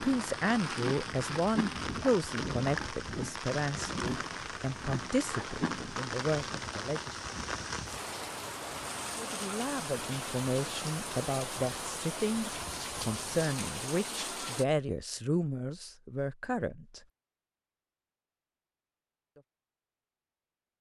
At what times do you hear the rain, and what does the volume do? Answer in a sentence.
The rain can be heard from 0.0 to 14.7 s, at a steady volume.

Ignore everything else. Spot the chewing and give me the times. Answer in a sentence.
The chewing can be heard from 0.0 to 5.8 s.